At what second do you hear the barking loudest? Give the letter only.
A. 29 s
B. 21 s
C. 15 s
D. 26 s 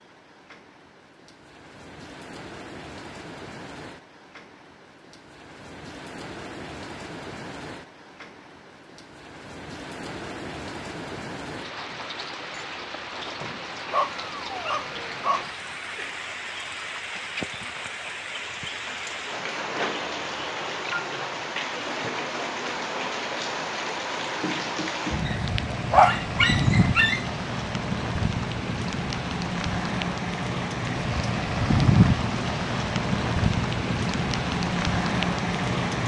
D.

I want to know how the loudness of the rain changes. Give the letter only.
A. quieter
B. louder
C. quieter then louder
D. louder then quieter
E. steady
B.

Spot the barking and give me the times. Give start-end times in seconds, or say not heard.
13.9-15.5, 25.2-27.2.